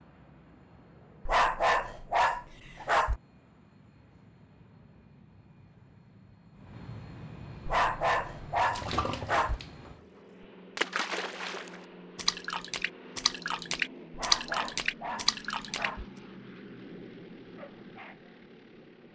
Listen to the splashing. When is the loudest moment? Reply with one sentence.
The volume of the splashing peaks at 14 seconds.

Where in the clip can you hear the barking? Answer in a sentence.
The barking can be heard from 1.2 to 3.2 s, from 7.7 to 9.6 s and from 14.1 to 16.1 s.